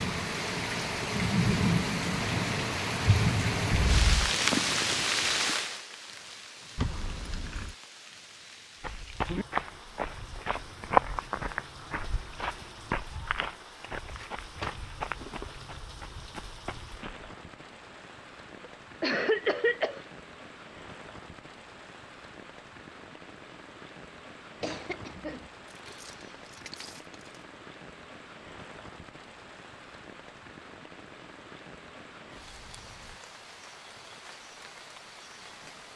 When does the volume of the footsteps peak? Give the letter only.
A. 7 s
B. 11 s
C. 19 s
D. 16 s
B.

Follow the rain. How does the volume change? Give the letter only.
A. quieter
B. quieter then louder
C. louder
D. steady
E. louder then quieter
A.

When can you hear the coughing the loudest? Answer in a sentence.
The volume of the coughing peaks at 19 seconds.